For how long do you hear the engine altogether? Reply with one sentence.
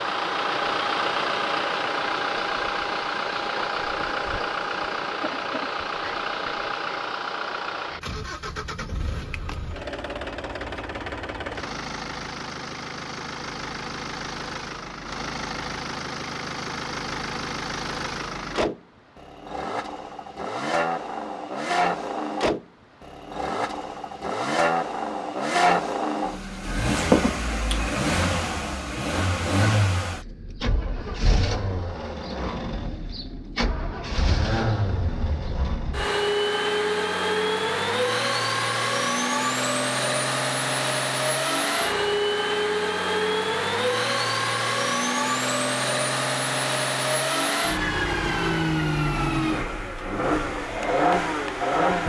You can hear the engine for 52 seconds altogether.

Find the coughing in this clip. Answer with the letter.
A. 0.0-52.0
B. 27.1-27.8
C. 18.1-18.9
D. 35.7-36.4
B.